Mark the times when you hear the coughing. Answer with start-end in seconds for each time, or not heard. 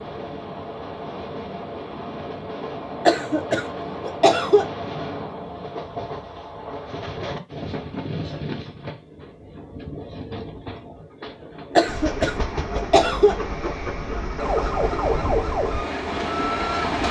3.0-4.7, 11.8-13.4.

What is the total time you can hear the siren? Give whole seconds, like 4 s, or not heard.
3 s.